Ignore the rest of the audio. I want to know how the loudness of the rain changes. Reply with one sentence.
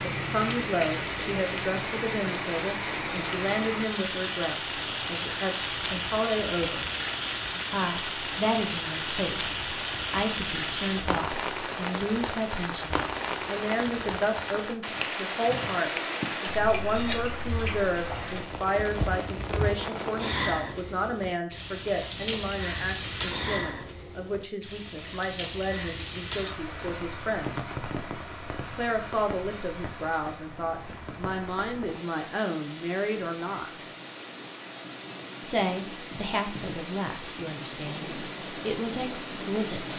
The loudness of the rain goes down.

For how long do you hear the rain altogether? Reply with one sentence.
You can hear the rain for 40 seconds altogether.